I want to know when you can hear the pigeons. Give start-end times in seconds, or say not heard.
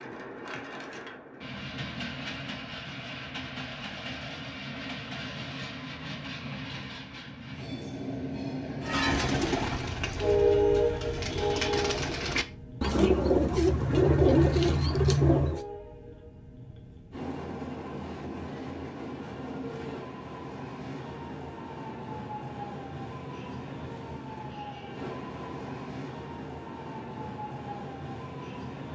8.8-15.6.